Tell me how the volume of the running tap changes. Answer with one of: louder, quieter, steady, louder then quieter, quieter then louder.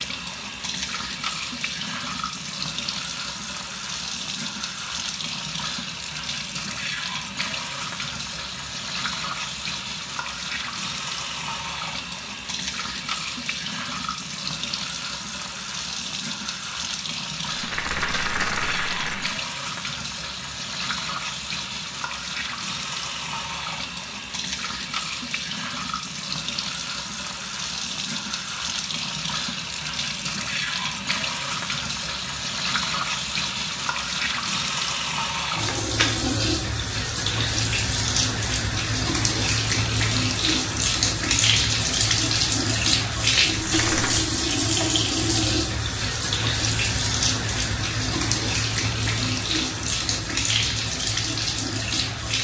louder.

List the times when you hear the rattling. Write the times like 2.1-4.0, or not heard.
17.4-19.4, 43.5-44.2.